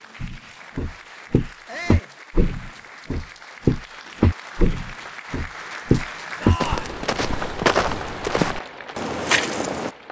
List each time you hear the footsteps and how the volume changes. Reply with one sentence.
The footsteps can be heard from 0.2 to 9.9 s, at a steady volume.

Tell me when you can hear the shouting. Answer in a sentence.
You can hear the shouting from 1.6 to 2.1 s and from 6.4 to 7.0 s.